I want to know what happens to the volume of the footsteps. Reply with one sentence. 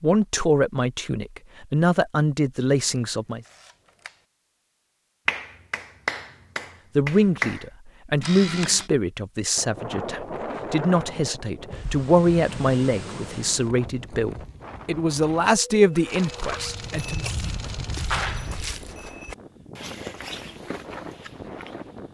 The loudness of the footsteps goes down.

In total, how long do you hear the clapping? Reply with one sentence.
The clapping can be heard for 3 seconds in total.